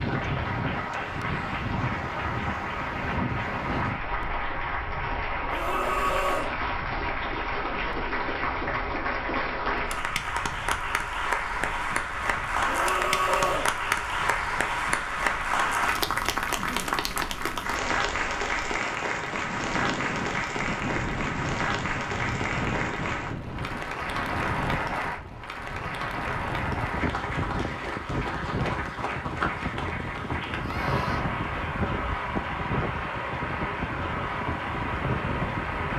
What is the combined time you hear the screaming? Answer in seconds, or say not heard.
3 s.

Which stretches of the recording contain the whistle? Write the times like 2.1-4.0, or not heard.
not heard.